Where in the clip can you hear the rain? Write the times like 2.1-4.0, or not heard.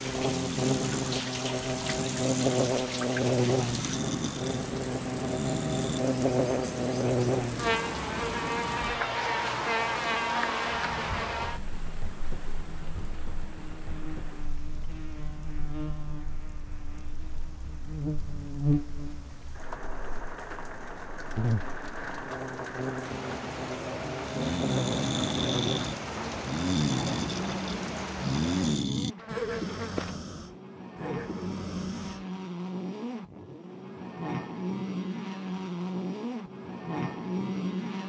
0.0-28.9.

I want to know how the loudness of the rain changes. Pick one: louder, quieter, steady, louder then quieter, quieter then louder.
quieter then louder.